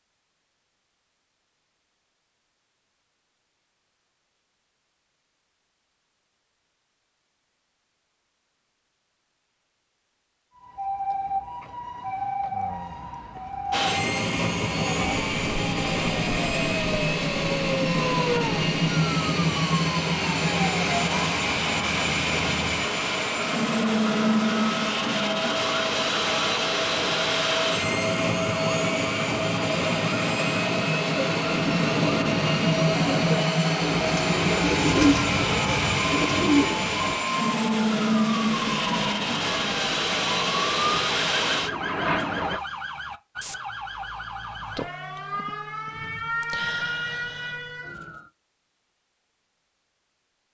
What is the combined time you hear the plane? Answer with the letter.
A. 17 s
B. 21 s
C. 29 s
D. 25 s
C.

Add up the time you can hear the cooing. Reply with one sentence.
The cooing can be heard for 6 seconds in total.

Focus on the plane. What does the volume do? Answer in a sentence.
The volume of the plane stays about the same.